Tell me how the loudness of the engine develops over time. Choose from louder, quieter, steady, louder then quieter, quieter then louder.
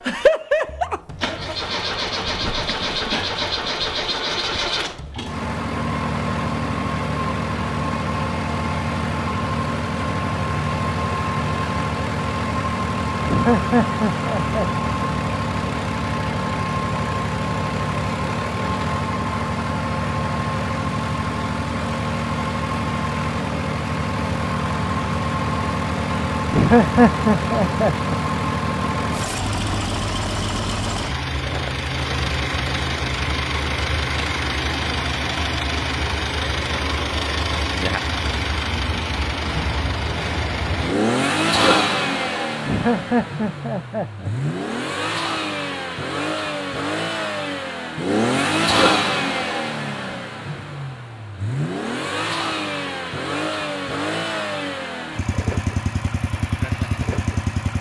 steady.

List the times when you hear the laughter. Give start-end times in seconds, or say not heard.
13.2-14.7, 26.5-28.2, 42.6-44.3.